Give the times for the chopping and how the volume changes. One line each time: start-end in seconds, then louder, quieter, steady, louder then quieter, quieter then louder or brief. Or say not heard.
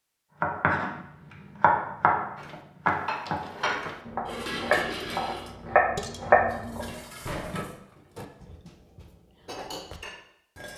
0.4-7.6 quieter then louder.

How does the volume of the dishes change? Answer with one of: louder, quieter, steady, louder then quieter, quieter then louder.
quieter.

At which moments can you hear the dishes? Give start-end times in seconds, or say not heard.
2.4-10.7.